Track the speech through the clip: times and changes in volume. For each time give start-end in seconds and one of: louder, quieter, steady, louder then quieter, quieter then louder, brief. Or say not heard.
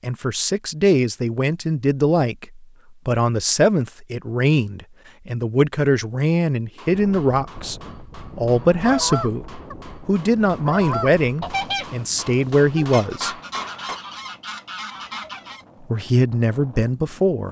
0.0-13.3 steady
15.9-17.4 brief.